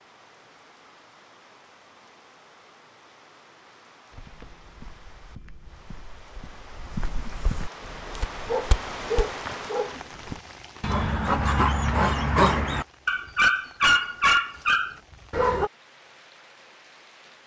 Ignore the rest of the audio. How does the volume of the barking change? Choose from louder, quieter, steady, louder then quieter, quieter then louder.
louder.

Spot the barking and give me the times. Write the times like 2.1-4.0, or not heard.
7.8-15.7.